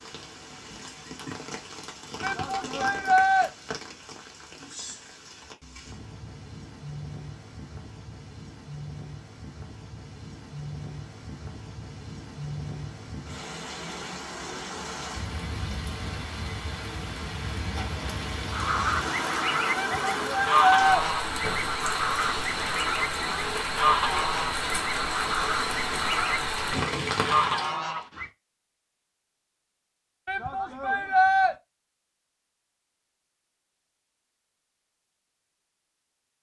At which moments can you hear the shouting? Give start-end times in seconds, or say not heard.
2.2-3.5, 19.8-21.1, 30.2-31.6.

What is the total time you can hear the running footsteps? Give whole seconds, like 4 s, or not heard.
not heard.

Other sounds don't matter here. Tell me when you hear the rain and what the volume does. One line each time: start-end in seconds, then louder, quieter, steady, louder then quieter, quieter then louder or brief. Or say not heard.
0.0-27.8 louder.